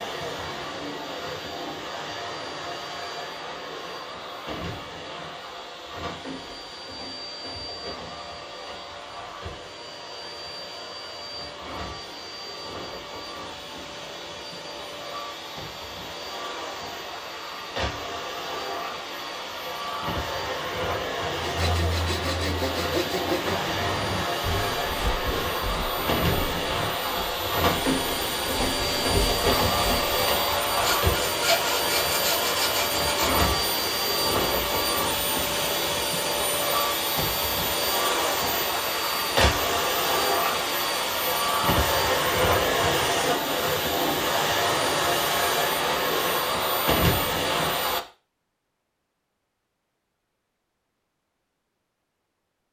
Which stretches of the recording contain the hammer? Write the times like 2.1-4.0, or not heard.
not heard.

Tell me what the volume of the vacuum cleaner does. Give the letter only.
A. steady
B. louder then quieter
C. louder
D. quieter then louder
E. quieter
C.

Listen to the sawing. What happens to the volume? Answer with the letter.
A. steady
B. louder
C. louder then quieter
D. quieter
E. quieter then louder
E.